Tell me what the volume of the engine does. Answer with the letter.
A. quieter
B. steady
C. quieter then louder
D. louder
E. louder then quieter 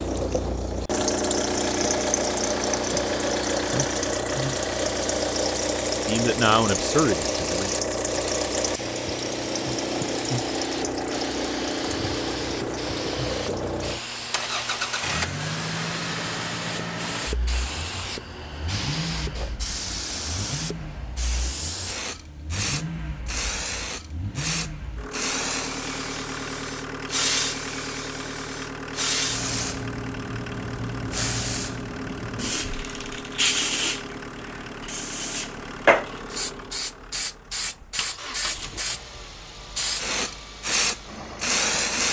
A.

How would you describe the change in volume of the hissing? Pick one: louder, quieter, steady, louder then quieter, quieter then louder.
louder.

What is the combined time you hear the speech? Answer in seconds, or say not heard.
2 s.